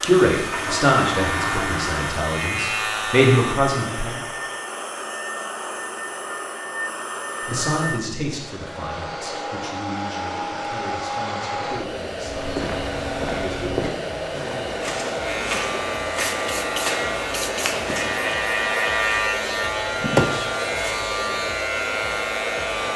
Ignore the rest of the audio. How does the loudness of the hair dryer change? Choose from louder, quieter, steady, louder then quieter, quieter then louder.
steady.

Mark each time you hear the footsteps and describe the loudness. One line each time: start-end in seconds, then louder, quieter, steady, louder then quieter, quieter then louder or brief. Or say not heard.
12.2-18.8 steady.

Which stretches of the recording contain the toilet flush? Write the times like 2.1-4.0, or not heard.
0.5-2.2.